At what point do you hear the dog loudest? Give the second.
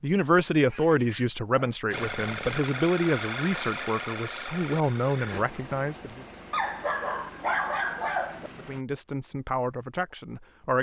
8 s.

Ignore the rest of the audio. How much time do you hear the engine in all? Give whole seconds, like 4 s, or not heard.
7 s.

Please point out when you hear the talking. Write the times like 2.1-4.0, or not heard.
0.0-6.2, 8.6-10.7.